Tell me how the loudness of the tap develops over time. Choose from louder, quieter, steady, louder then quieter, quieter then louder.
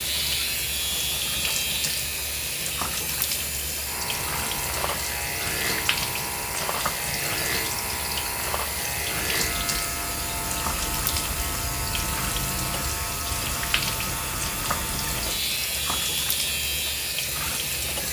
steady.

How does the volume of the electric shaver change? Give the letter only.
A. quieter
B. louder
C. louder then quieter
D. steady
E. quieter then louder
D.